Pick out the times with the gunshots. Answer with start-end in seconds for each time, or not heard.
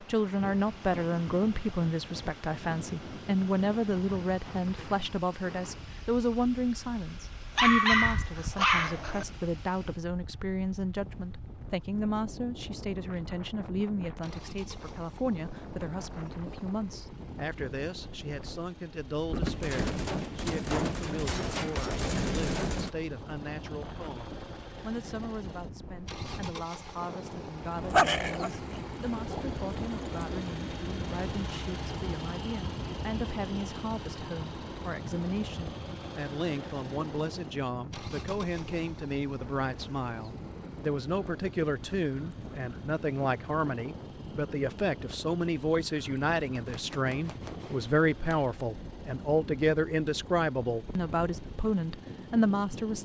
19.3-22.9, 46.5-48.5.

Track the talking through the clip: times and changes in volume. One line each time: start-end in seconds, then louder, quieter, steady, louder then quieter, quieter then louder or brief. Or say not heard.
0.1-53.0 quieter then louder.